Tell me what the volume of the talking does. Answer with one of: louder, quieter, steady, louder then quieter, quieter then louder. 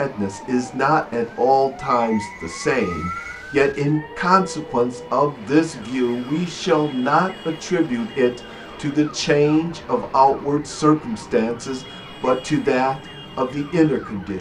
steady.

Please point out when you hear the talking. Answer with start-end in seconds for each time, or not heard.
0.0-14.3.